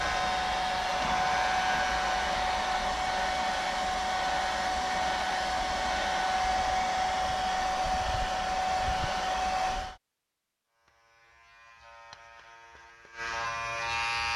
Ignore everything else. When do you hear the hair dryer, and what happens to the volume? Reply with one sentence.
The hair dryer can be heard from 0.0 to 9.9 s, at a steady volume.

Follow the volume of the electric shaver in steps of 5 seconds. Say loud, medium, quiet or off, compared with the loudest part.
loud, off, loud.